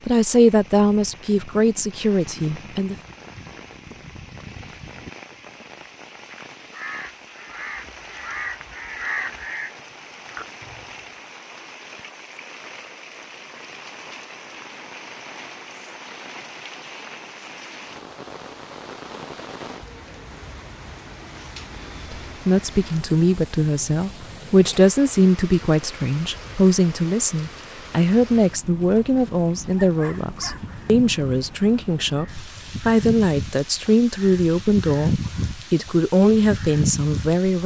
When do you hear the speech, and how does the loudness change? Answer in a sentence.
The speech can be heard briefly from 0.1 to 3.0 s; and from 22.1 to 37.6 s, at a steady volume.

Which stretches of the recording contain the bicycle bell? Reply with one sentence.
You can't hear the bicycle bell here.